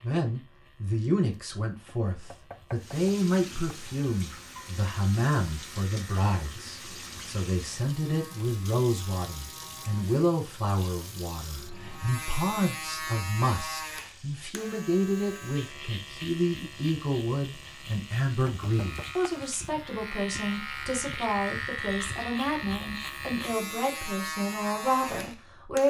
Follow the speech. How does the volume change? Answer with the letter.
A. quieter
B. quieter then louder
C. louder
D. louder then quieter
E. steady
E.